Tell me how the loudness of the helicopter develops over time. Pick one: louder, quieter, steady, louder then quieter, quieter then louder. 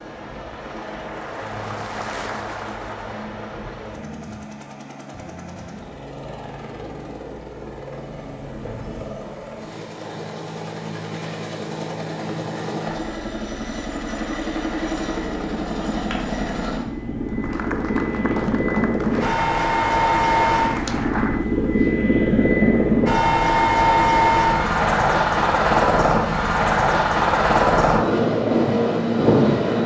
louder.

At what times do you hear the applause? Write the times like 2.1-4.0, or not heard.
0.0-4.2, 17.3-21.5.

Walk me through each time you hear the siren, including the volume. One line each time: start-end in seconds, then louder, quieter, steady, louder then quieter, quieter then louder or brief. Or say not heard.
not heard.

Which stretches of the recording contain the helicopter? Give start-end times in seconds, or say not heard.
0.0-29.8.